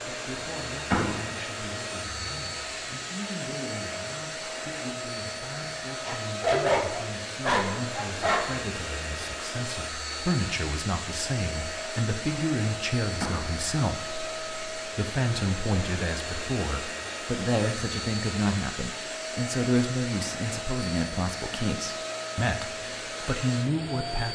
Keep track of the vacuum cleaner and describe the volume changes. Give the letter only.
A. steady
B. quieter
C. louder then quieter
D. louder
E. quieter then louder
A.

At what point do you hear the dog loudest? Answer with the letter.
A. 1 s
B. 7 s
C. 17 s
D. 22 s
B.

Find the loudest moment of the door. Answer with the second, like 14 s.
1 s.